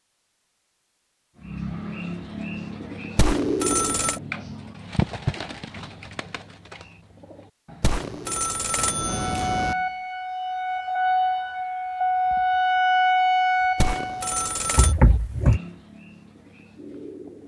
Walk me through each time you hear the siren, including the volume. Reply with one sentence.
You can hear the siren from 9.0 to 14.4 s, getting louder.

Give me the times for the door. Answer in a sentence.
The door can be heard from 14.8 to 15.6 s.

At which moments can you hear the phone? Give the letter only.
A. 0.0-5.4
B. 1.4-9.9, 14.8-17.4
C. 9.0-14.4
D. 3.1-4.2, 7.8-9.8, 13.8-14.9
D.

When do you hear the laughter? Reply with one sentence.
You can't hear the laughter here.